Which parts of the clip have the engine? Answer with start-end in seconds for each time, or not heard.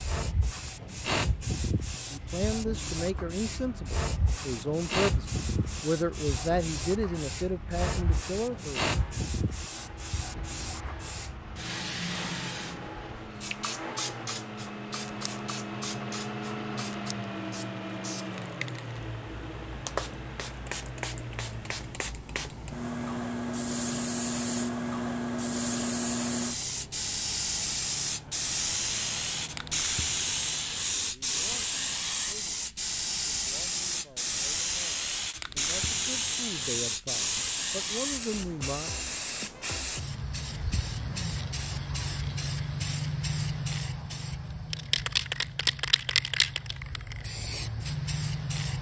0.1-30.9.